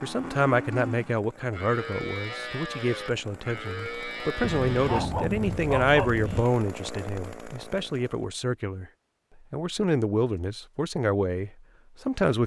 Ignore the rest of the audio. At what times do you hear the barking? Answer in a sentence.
You can hear the barking from 4.8 to 6.5 s.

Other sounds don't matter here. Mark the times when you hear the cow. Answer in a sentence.
You can hear the cow from 0.0 to 5.0 s.